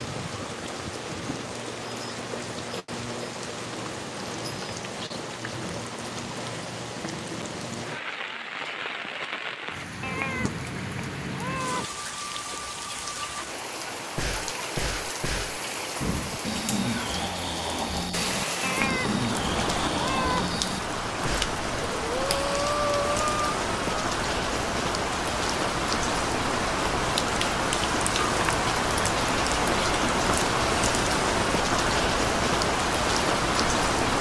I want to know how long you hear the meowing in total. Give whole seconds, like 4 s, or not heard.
4 s.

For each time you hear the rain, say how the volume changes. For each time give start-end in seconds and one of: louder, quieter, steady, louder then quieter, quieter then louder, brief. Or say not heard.
0.0-34.1 louder.